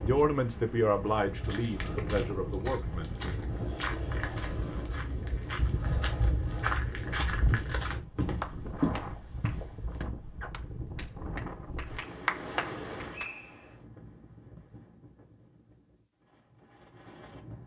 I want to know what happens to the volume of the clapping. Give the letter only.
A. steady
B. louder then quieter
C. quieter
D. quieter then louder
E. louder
D.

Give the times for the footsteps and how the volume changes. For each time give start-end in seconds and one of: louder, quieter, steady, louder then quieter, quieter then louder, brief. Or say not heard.
1.1-10.1 louder.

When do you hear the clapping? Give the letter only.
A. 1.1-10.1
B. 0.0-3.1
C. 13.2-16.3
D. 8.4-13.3
D.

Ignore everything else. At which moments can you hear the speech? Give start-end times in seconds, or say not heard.
0.0-3.1.